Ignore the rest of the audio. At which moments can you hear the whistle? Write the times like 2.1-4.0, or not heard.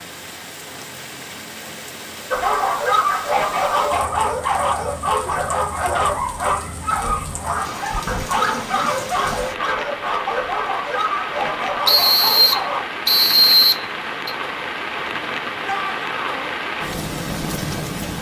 11.8-14.3.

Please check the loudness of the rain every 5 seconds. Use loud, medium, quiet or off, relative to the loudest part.
medium, medium, loud, loud.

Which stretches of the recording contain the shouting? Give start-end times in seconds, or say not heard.
15.6-16.5.